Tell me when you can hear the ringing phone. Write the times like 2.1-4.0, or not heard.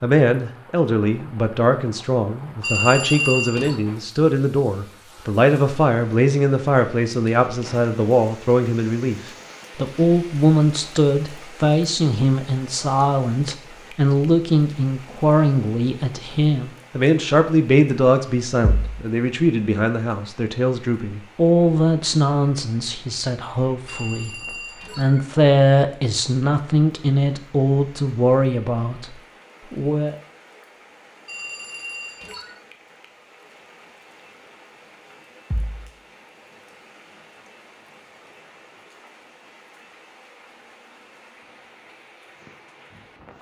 2.6-3.8, 23.9-25.2, 31.2-32.6.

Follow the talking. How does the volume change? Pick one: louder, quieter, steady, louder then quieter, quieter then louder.
steady.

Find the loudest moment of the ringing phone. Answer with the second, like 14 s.
3 s.